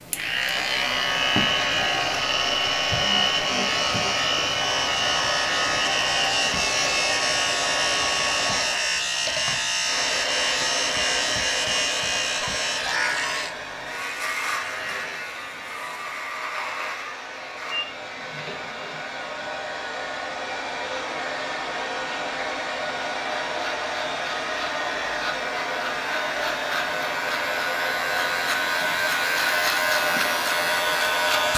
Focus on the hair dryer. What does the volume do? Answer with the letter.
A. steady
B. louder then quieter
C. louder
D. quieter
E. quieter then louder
E.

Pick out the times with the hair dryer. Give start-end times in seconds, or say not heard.
0.0-31.5.